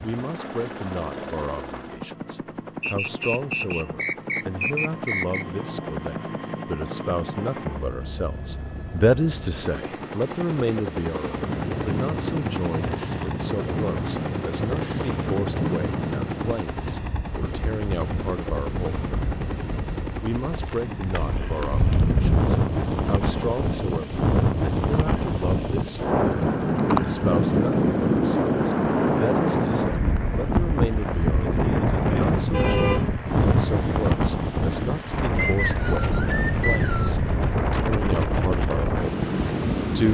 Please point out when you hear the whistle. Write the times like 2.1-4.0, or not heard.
2.8-5.5, 35.4-37.2.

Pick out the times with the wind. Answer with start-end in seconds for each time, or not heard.
11.2-40.0.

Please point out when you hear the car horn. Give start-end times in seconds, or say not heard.
32.5-33.1.